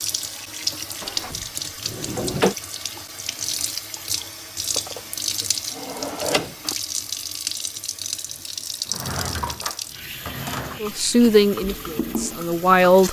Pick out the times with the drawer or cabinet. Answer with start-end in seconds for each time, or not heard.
1.0-2.5, 4.8-6.8, 8.8-10.8.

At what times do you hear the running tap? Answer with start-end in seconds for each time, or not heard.
0.0-13.0.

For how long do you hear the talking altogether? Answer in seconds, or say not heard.
2 s.